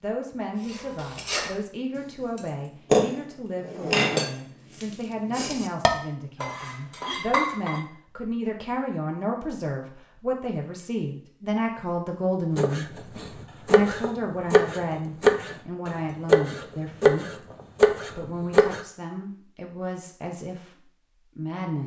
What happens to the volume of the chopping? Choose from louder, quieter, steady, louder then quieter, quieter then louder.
louder.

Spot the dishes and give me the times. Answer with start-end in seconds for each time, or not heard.
0.6-1.6, 2.4-7.8.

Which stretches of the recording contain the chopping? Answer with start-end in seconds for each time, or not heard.
12.6-18.8.